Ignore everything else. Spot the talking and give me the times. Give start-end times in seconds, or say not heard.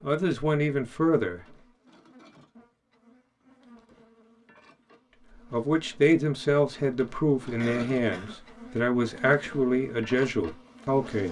0.0-1.4, 5.5-11.2.